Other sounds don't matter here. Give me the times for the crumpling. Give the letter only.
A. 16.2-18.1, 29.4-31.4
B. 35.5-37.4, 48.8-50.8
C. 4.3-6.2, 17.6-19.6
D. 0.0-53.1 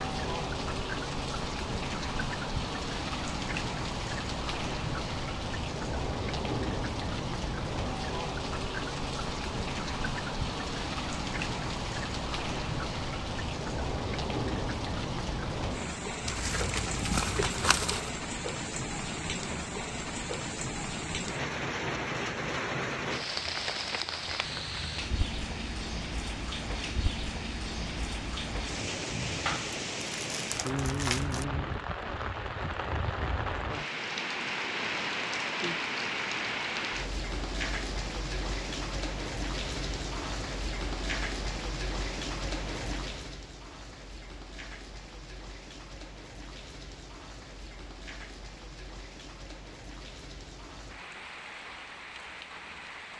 A.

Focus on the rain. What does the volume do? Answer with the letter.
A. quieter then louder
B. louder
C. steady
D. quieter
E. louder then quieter
D.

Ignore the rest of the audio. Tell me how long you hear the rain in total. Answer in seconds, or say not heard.
53 s.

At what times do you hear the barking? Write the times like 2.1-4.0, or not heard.
not heard.